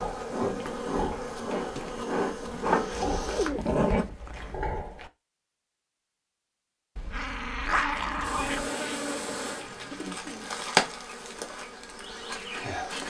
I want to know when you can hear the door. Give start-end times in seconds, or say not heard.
not heard.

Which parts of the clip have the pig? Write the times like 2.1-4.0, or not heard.
0.0-5.1.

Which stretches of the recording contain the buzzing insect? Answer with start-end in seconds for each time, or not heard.
0.0-3.5, 8.2-13.0.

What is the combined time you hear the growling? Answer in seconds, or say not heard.
3 s.